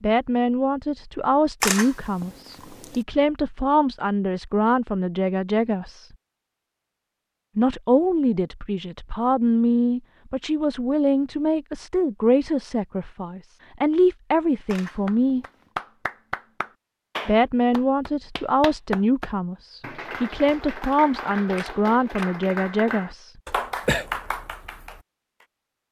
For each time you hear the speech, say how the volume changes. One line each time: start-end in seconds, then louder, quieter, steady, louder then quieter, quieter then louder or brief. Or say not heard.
0.0-6.1 steady
7.5-15.4 steady
17.2-23.4 steady.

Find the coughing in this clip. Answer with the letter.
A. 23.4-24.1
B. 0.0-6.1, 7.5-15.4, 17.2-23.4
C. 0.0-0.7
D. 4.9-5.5
A.